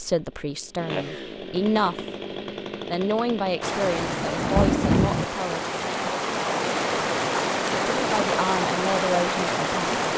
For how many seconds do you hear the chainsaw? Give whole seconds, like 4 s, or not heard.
4 s.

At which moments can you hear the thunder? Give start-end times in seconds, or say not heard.
3.2-5.2.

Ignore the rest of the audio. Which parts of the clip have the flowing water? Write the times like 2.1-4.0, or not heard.
3.6-10.1.